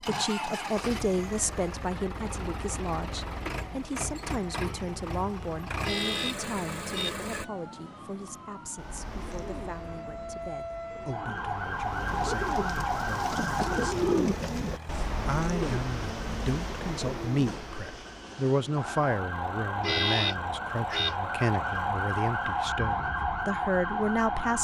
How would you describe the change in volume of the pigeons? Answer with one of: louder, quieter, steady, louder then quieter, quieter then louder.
louder then quieter.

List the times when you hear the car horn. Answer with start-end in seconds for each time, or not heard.
5.8-7.2, 19.8-21.1.